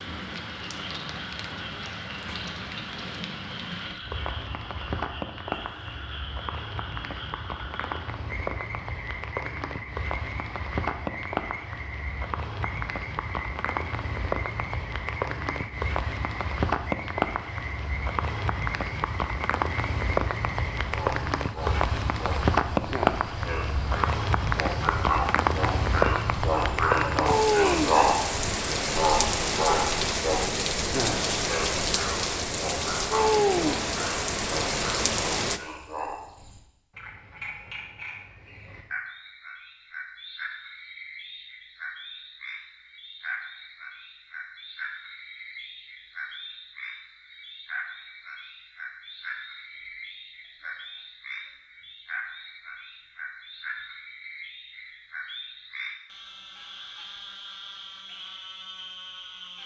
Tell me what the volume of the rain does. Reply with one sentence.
The loudness of the rain goes up.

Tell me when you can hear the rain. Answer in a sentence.
The rain can be heard from 0.0 to 35.6 s.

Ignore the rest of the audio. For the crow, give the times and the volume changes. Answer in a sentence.
The crow can't be heard in this clip.